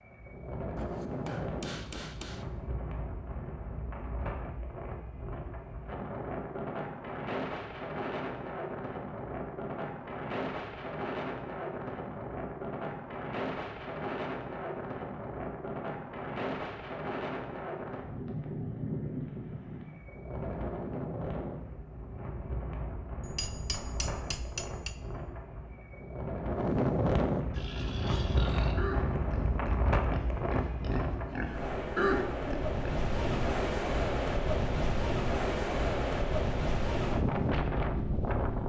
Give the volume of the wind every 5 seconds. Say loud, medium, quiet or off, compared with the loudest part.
medium, medium, medium, medium, medium, loud, loud, loud.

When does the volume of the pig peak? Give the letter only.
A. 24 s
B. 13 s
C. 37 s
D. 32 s
D.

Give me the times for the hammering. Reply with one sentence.
The hammering can be heard from 0.8 to 2.5 s and from 23.2 to 24.9 s.